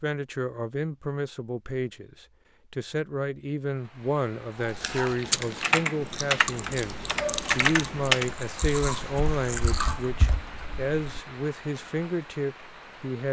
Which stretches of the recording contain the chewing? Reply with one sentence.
The chewing can be heard from 4.5 to 10.1 s.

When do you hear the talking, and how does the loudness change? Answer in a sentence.
The talking can be heard from 0.0 to 13.2 s, at a steady volume.